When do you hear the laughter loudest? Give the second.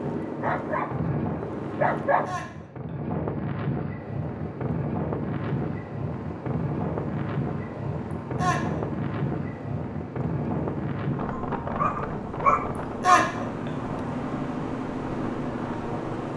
13 s.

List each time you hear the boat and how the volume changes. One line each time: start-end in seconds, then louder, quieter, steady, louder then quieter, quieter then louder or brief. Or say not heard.
0.0-2.4 brief
4.0-16.3 louder.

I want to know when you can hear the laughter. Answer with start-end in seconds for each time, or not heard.
2.2-3.0, 8.3-8.8, 13.0-13.7.